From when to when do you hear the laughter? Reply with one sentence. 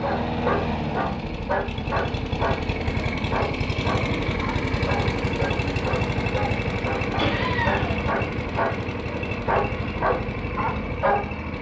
The laughter can be heard from 7.2 to 8.0 s.